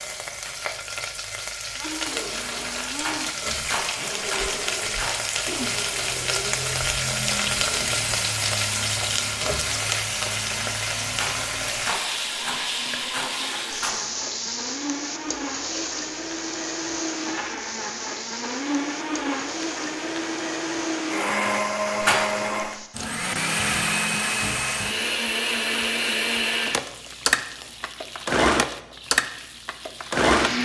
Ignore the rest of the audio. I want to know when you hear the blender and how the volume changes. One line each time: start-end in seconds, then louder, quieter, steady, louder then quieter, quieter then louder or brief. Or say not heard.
1.8-30.6 louder.